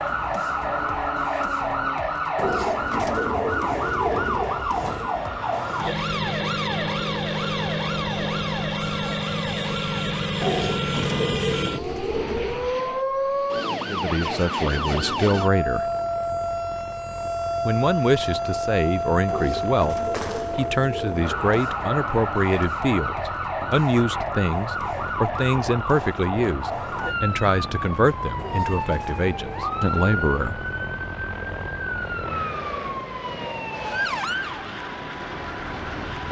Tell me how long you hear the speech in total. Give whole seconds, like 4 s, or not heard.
15 s.